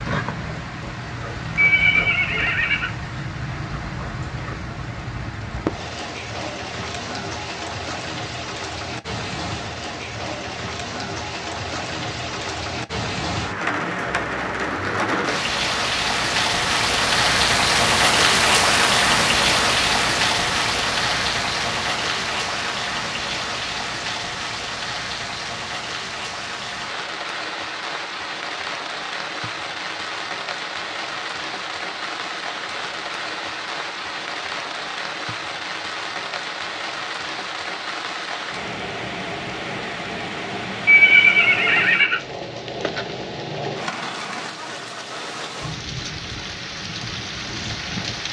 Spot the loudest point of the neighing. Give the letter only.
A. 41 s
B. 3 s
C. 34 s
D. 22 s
A.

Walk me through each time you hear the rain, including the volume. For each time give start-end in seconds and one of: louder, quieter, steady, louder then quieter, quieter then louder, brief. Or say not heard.
0.0-48.2 louder then quieter.